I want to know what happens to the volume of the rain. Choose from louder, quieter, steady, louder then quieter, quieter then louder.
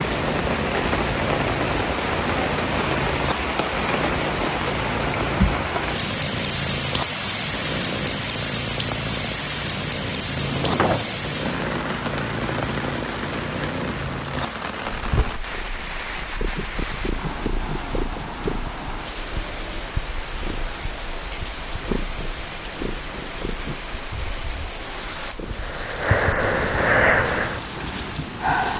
quieter.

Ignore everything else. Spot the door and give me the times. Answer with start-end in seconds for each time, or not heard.
10.3-11.3.